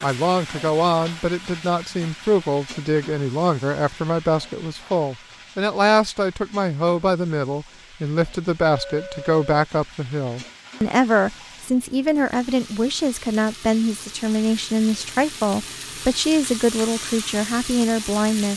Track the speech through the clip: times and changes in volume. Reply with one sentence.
The speech can be heard from 0.0 to 18.5 s, at a steady volume.